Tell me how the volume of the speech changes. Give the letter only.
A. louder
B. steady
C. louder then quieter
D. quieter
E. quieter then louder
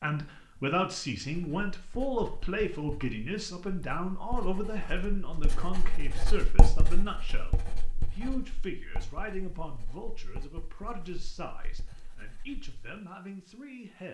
D.